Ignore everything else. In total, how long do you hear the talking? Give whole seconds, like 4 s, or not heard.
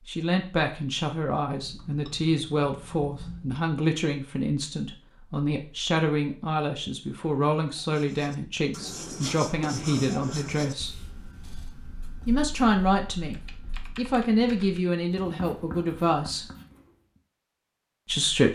16 s.